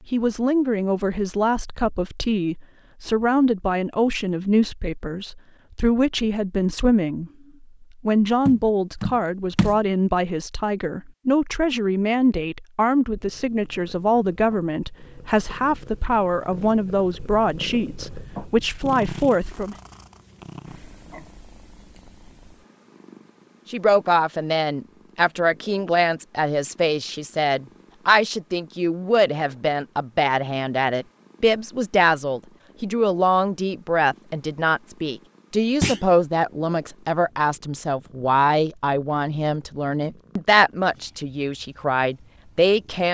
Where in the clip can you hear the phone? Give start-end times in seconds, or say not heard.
not heard.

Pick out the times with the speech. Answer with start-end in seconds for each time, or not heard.
0.1-7.3, 8.1-19.8, 23.7-43.0.